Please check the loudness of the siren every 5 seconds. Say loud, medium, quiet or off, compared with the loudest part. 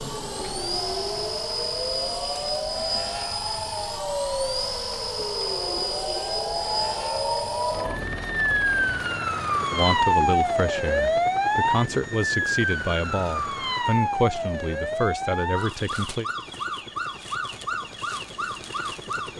medium, loud, loud, medium.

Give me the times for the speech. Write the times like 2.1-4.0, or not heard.
9.7-16.2.